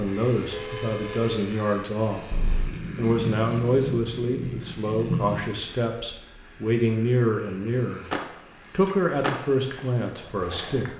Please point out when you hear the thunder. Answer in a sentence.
The thunder can be heard from 2.3 to 5.5 s.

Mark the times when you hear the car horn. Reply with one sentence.
You can hear the car horn from 0.5 to 1.4 s.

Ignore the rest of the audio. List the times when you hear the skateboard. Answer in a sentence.
You can hear the skateboard from 8.1 to 10.9 s.